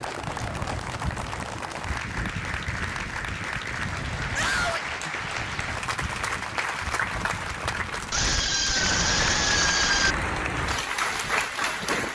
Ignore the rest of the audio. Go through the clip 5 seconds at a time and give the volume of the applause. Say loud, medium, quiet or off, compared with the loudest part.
medium, loud, loud.